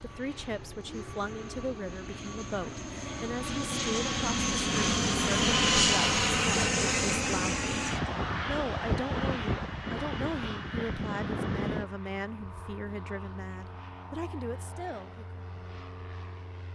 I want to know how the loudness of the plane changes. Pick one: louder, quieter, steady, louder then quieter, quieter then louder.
louder then quieter.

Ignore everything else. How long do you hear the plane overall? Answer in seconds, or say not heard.
17 s.